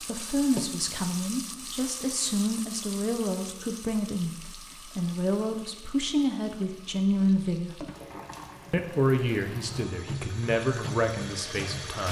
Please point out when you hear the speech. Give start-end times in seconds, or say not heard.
0.0-7.8, 8.7-12.0.